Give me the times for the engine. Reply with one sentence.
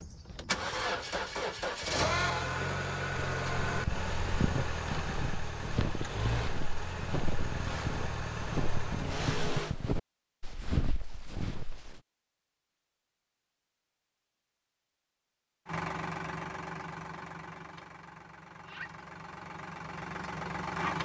The engine can be heard from 0.0 to 9.8 s and from 15.7 to 20.9 s.